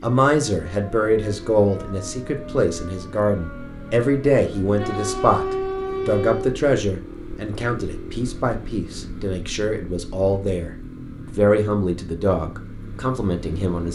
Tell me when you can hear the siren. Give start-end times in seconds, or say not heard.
0.0-6.6.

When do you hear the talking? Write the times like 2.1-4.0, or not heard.
0.0-13.9.